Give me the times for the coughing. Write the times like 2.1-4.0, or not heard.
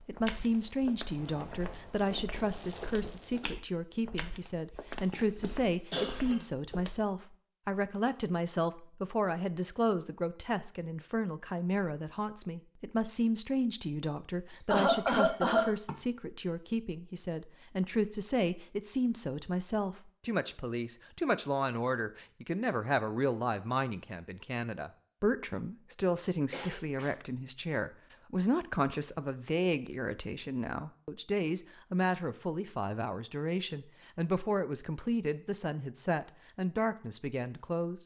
4.9-6.5, 14.5-15.9, 26.5-27.1.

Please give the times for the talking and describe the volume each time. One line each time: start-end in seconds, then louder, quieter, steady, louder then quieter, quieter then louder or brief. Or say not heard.
0.1-38.0 steady.